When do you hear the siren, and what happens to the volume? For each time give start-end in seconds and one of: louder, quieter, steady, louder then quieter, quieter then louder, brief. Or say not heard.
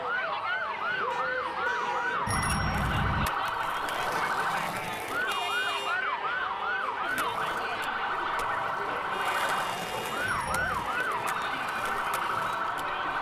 0.0-13.1 steady.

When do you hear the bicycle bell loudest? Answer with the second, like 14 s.
3 s.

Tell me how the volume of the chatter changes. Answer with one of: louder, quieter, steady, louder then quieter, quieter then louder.
steady.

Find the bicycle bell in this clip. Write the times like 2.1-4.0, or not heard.
2.2-3.3, 10.2-10.9.